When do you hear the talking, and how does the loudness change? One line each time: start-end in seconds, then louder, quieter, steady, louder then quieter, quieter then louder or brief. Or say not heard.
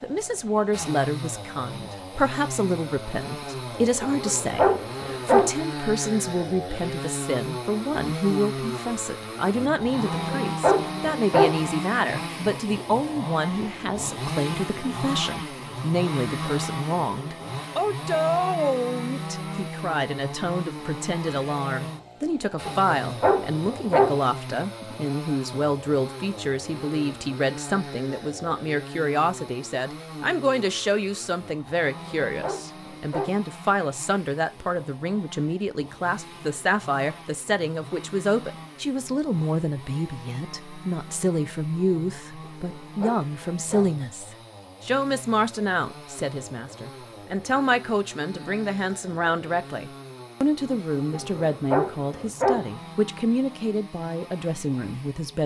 0.0-55.4 steady.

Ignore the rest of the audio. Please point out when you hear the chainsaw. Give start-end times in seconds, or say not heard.
0.0-55.4.